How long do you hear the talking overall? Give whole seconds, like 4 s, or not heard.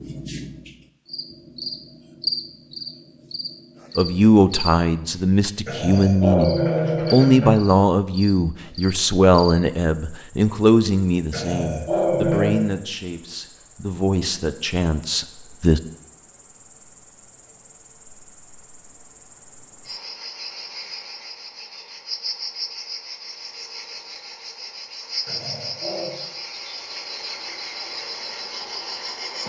12 s.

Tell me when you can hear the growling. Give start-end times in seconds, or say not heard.
5.7-7.5, 11.3-12.7, 25.2-26.2.